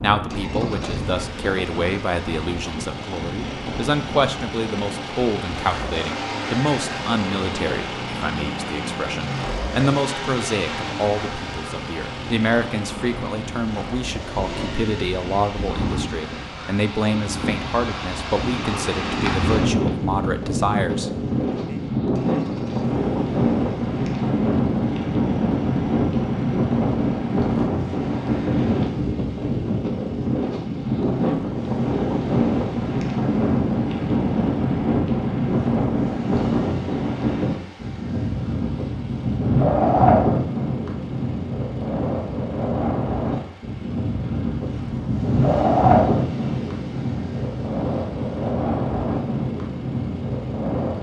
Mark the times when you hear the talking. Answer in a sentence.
The talking can be heard from 0.0 to 21.8 s.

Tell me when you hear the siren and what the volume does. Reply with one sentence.
You can't hear the siren here.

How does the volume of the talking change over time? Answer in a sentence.
The loudness of the talking stays about the same.